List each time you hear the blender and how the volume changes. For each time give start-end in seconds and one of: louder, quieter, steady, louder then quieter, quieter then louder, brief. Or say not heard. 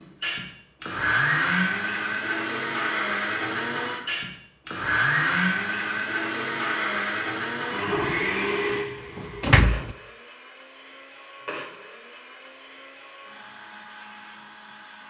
0.0-15.0 quieter.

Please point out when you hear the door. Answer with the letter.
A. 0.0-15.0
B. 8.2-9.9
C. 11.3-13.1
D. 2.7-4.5
B.